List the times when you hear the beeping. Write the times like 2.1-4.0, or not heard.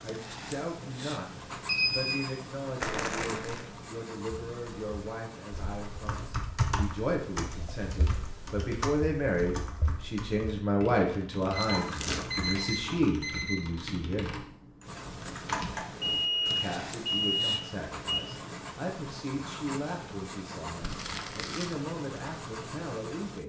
1.6-2.3, 11.5-13.7, 16.0-18.7.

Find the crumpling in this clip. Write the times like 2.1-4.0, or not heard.
2.8-3.6, 11.6-12.3, 20.8-21.8.